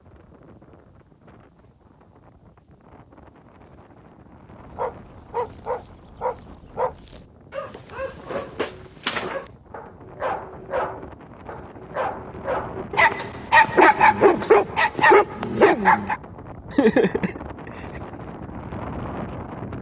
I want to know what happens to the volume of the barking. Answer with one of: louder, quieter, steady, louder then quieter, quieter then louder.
louder.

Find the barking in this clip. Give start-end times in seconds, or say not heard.
4.7-16.1.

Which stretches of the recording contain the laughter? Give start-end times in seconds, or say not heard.
16.7-17.7.